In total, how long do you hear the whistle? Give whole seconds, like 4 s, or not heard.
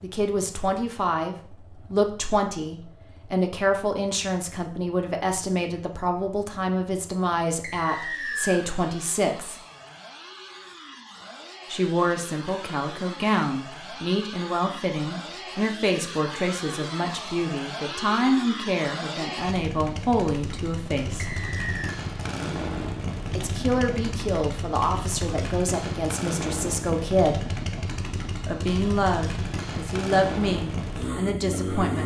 2 s.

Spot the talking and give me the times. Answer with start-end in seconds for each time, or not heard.
0.0-9.6, 11.7-21.4, 23.4-27.4, 28.4-32.0.